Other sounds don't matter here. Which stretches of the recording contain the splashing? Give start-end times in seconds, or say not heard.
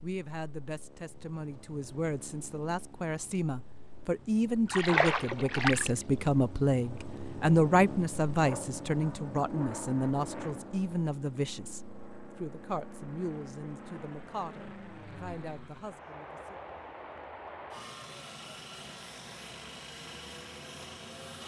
4.7-5.9.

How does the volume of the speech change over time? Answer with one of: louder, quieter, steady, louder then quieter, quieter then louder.
louder then quieter.